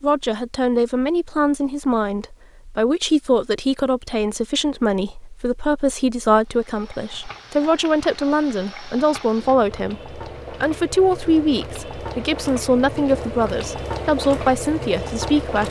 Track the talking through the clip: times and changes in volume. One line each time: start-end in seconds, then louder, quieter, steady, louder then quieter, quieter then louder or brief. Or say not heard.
0.0-15.6 steady.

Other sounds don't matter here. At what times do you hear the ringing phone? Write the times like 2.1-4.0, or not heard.
not heard.